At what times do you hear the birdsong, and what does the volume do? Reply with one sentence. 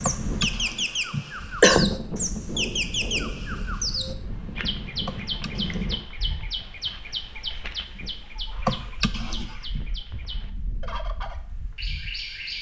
The birdsong can be heard from 0.0 to 12.5 s, getting quieter.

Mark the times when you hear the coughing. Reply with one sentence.
You can hear the coughing from 0.1 to 1.9 s, from 5.0 to 6.0 s and from 8.7 to 9.8 s.